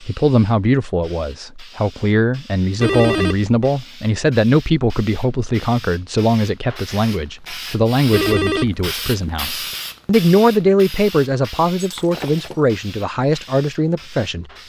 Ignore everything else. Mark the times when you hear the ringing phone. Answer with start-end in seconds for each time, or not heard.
2.8-3.5, 8.1-8.8.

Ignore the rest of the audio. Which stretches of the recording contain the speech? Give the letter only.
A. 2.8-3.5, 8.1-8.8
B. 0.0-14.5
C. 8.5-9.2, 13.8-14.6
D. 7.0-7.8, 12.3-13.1
B.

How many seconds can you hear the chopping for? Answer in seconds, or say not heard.
not heard.